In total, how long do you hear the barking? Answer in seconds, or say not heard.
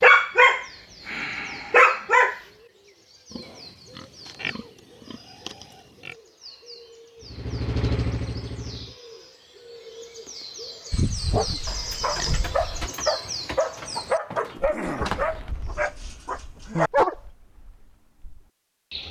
8 s.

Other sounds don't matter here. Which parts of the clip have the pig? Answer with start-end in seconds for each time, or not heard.
3.3-6.2, 10.9-12.9.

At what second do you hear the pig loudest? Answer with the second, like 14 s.
11 s.